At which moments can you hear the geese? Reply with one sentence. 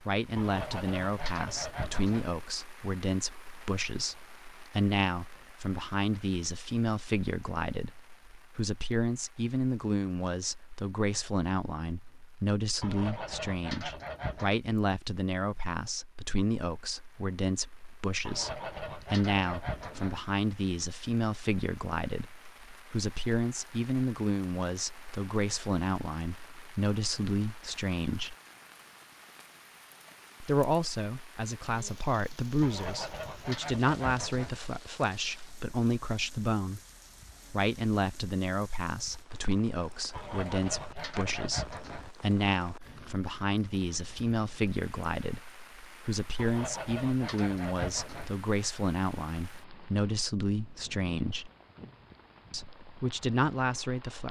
The geese can be heard from 0.3 to 2.4 s, from 12.8 to 14.6 s, from 18.2 to 20.2 s, from 32.6 to 34.6 s, from 40.1 to 42.1 s and from 46.4 to 48.4 s.